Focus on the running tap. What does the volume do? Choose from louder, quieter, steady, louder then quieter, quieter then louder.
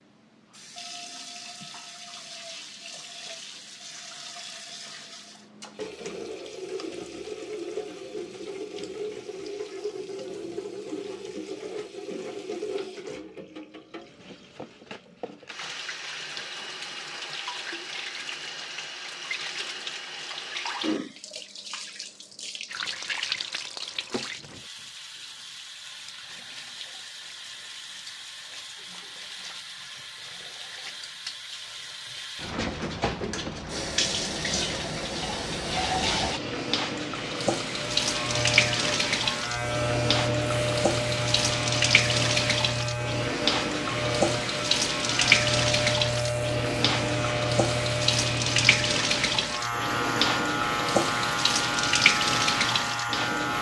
louder.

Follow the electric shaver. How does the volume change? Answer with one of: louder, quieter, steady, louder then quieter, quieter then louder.
steady.